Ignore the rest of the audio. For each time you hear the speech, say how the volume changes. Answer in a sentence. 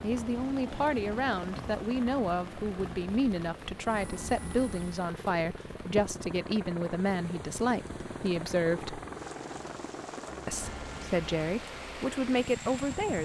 You can hear the speech from 0.0 to 9.0 s, at a steady volume; and briefly from 10.4 to 13.2 s.